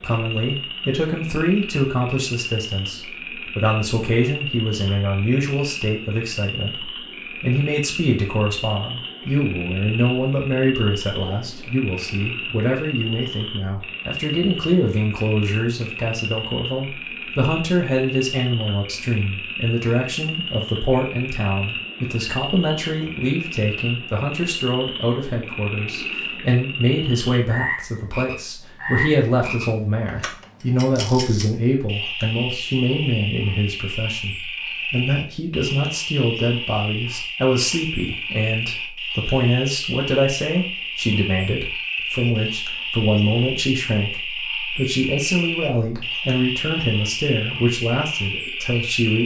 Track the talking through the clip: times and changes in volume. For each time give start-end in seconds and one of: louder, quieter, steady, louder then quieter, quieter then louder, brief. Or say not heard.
0.0-49.2 steady.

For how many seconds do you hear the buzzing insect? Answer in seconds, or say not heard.
not heard.